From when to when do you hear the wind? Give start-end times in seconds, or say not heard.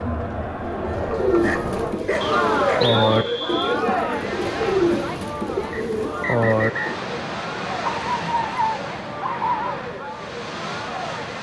2.1-11.3.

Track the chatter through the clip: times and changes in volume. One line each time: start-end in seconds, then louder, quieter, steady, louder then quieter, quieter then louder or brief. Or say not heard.
0.0-11.3 quieter.